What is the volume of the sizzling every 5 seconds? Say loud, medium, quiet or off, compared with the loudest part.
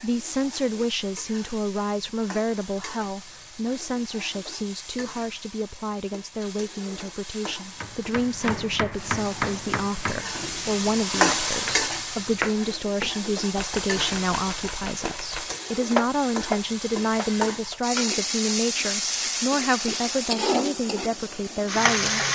quiet, quiet, loud, loud, loud.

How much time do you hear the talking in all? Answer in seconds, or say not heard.
22 s.